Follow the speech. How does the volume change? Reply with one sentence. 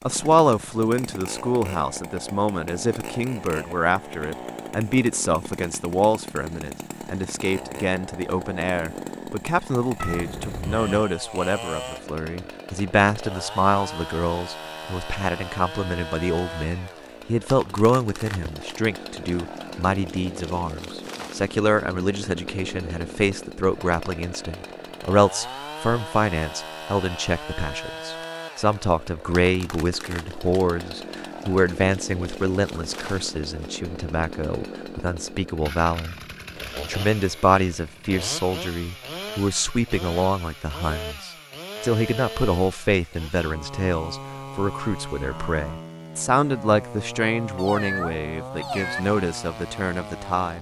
The loudness of the speech stays about the same.